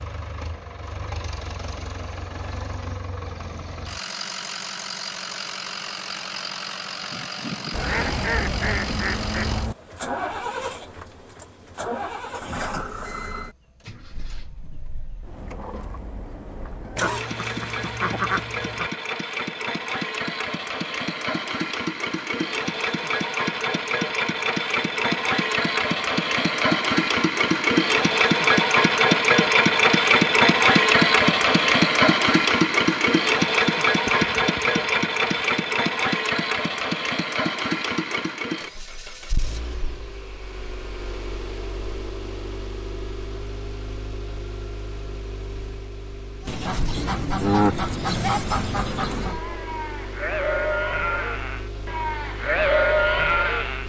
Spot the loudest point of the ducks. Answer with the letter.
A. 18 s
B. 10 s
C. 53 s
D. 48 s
D.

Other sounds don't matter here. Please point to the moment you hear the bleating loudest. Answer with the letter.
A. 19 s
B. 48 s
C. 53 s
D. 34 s
C.